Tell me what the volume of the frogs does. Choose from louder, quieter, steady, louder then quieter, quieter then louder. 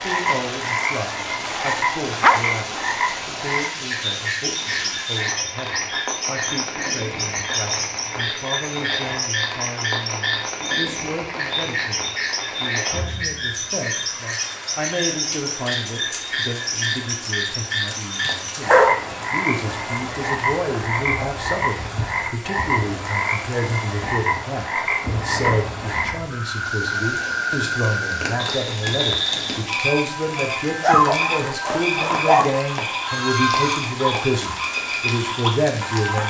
steady.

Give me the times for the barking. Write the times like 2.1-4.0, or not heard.
1.4-2.9, 18.2-19.1, 30.8-32.5.